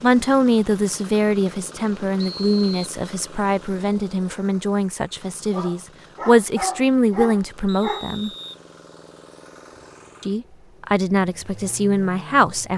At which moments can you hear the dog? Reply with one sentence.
You can hear the dog from 5.5 to 8.2 s.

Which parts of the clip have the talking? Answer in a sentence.
You can hear the talking from 0.0 to 8.3 s and from 10.2 to 12.7 s.